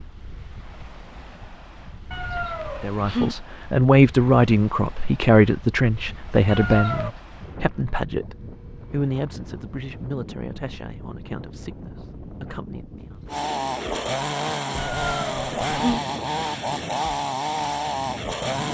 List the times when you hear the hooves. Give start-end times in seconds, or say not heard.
not heard.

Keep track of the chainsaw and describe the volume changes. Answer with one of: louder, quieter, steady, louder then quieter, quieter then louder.
steady.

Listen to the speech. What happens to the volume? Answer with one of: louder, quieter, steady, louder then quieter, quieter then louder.
quieter.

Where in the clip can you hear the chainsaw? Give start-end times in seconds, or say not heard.
13.2-18.7.